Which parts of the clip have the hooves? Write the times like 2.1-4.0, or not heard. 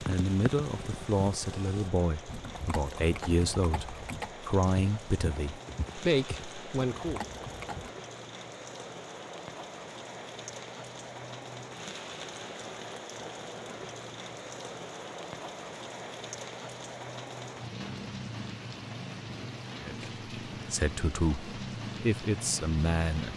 0.0-7.9.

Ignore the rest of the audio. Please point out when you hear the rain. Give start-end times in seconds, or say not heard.
0.0-23.3.